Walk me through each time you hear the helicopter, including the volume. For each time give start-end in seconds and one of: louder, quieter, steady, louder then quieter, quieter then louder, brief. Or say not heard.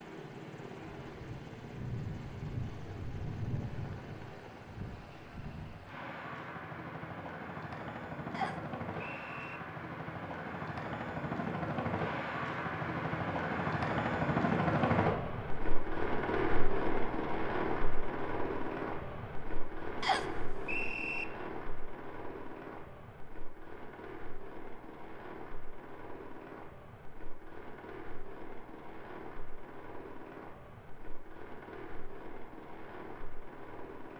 0.0-34.1 louder then quieter.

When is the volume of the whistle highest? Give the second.
20 s.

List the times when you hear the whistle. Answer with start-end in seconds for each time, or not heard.
8.3-9.6, 20.0-21.2.